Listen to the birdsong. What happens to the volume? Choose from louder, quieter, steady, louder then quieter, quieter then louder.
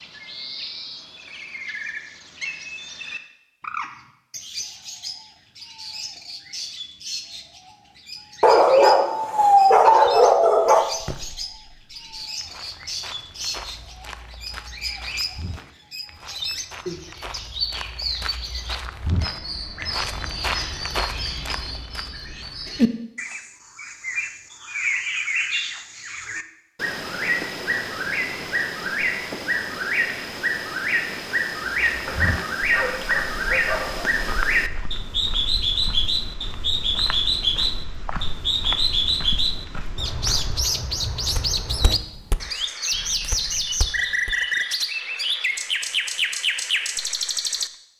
louder.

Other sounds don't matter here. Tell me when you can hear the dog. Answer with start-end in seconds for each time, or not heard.
8.4-10.8, 32.0-34.1.